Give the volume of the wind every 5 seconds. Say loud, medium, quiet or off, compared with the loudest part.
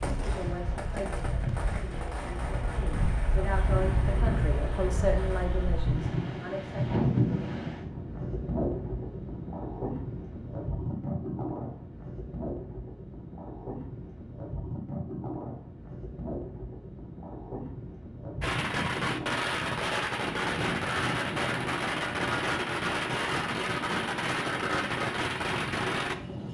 loud, loud, medium, medium, medium, medium.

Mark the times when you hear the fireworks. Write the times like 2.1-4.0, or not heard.
0.0-5.5, 18.4-26.1.